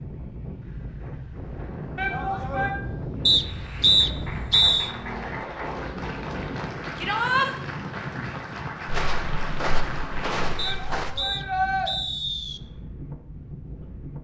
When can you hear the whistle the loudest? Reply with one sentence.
The loudest moment of the whistle is at 4 seconds.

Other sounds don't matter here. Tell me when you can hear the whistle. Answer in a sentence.
The whistle can be heard from 3.2 to 4.9 s and from 10.6 to 12.6 s.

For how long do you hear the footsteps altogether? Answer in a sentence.
The footsteps can be heard for 2 seconds in total.